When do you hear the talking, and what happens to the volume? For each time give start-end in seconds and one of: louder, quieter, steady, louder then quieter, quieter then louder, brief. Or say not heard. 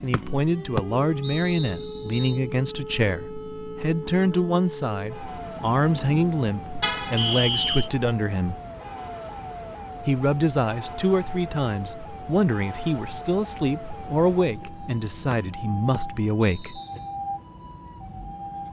0.0-8.6 steady
10.0-16.8 steady.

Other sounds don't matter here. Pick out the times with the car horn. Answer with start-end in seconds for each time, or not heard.
6.8-7.5.